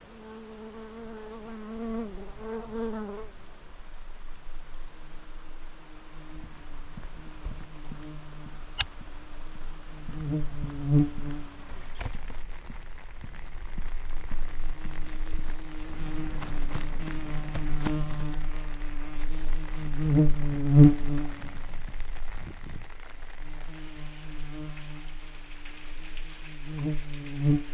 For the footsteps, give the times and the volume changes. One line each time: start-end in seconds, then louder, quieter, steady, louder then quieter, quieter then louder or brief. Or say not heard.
6.3-18.2 quieter then louder.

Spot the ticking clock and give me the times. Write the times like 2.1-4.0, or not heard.
not heard.